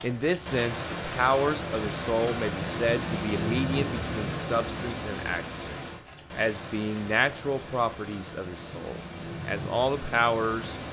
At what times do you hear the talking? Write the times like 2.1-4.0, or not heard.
0.0-5.8, 6.3-10.8.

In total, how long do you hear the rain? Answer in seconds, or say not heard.
11 s.